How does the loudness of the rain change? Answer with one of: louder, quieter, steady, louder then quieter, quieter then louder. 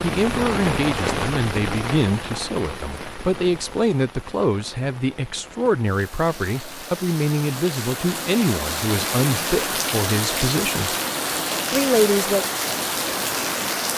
quieter then louder.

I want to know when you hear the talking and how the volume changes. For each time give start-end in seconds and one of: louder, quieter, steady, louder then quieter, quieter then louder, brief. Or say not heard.
0.0-10.9 steady
11.7-12.4 brief.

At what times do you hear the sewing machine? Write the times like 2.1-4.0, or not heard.
not heard.